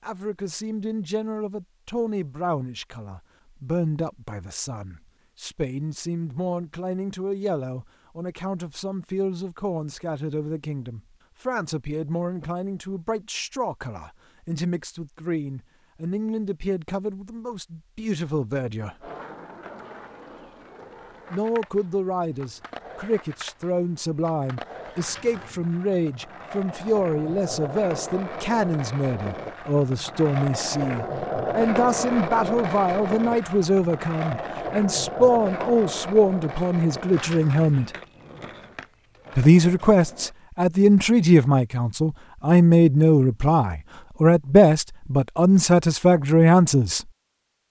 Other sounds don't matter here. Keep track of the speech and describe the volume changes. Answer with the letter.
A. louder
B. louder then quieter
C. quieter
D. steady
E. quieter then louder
A.